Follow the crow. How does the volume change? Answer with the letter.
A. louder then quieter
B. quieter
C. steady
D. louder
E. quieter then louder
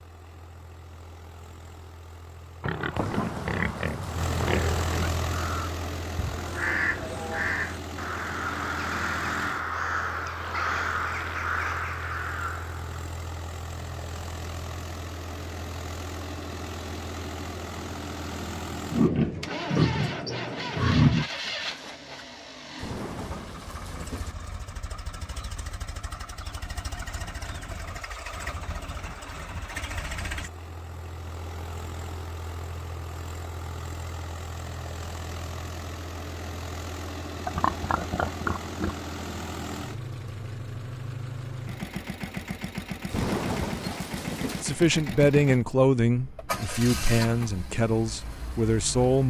C.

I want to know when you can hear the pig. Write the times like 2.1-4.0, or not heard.
2.6-5.1, 18.9-21.3, 37.5-39.0.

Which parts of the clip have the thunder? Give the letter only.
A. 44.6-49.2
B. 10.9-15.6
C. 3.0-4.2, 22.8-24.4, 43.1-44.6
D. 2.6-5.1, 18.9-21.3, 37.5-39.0
C.